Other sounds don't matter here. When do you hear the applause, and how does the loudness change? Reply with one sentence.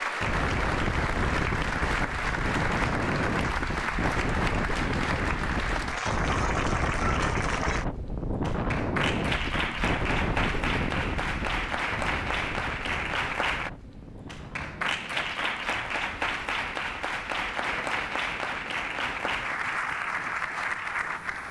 You can hear the applause from 0.0 to 21.4 s, at a steady volume.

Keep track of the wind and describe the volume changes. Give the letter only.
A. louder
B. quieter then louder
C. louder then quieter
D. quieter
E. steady
D.